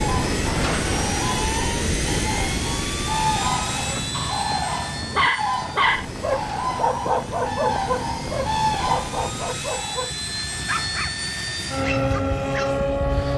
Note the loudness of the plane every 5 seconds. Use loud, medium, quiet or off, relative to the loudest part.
loud, medium, loud.